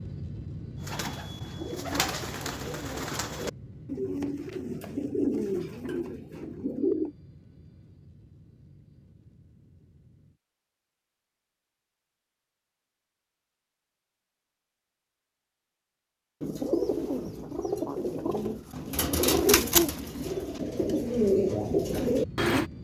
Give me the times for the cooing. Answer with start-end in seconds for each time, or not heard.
0.8-7.2, 16.4-22.6.